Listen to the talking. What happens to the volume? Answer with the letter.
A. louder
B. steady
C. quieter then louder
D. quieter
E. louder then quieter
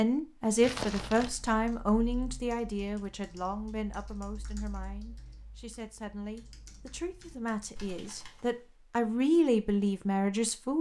C.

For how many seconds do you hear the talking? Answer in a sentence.
The talking can be heard for 11 seconds in total.